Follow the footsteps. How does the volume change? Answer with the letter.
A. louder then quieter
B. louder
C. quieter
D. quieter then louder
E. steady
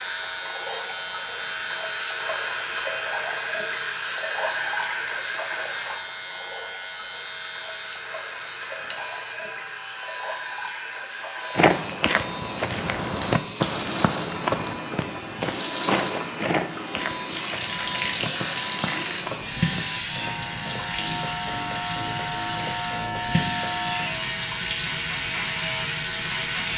C.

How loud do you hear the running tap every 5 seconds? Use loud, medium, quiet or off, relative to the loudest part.
loud, medium, medium, loud, loud, loud.